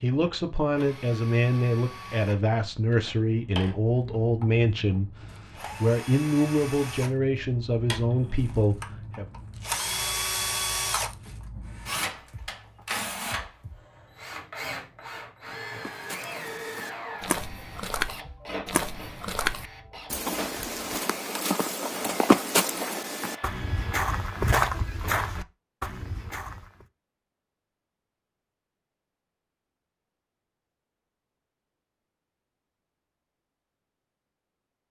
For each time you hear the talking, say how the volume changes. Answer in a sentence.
You can hear the talking from 0.0 to 9.2 s, at a steady volume.